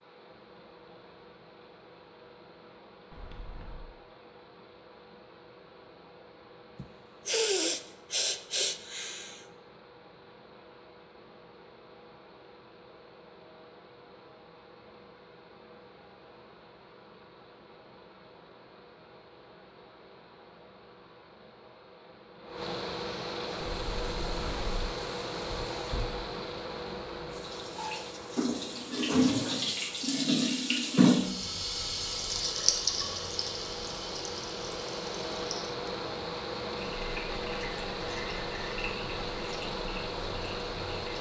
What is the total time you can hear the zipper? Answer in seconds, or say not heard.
2 s.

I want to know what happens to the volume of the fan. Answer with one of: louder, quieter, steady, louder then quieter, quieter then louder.
louder.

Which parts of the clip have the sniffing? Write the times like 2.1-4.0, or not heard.
6.8-9.4.